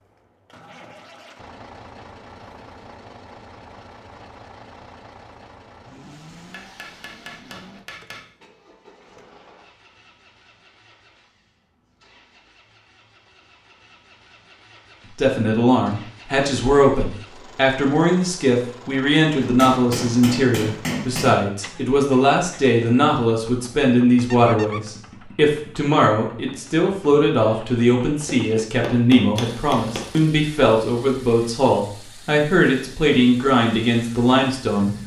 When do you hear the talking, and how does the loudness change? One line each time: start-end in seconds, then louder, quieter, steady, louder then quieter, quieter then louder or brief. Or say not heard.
15.2-35.0 steady.